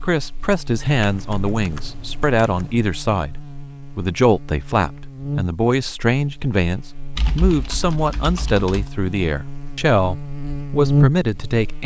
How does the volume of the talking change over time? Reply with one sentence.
The volume of the talking stays about the same.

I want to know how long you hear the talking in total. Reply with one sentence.
You can hear the talking for 12 seconds altogether.